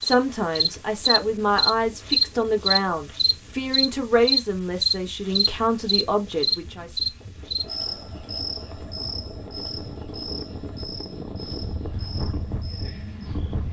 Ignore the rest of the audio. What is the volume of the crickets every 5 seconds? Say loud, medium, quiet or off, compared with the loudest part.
loud, medium, quiet.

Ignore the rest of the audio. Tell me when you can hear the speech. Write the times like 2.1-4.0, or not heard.
0.0-6.9.